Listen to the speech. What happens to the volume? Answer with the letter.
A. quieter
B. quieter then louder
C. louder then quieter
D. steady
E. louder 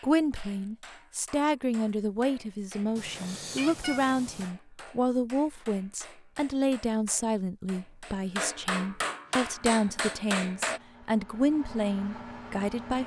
D.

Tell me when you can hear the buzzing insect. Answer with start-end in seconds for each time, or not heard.
not heard.